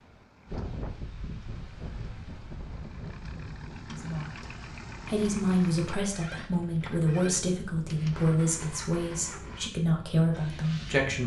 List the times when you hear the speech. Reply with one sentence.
You can hear the speech from 4.0 to 11.2 s.